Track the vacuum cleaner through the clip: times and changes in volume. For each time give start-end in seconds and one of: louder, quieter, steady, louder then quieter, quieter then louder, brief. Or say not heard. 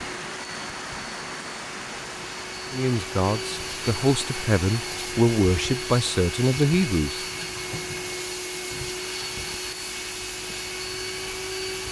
0.0-11.8 louder.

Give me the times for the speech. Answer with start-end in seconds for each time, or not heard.
2.7-7.2.